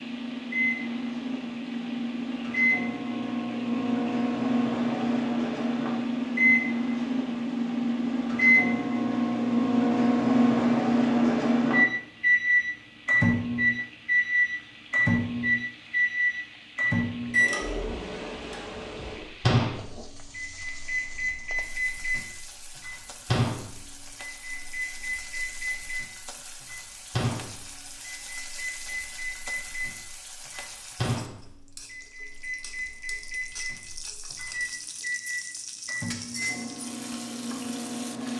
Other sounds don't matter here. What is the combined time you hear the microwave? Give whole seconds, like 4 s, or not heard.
38 s.